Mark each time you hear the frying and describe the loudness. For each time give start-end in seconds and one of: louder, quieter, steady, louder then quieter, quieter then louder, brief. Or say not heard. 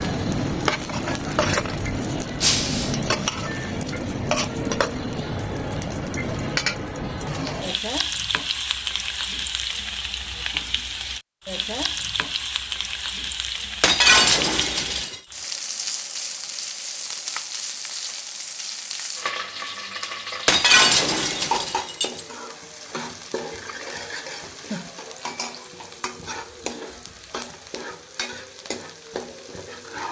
0.0-30.0 quieter.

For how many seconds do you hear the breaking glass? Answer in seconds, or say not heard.
4 s.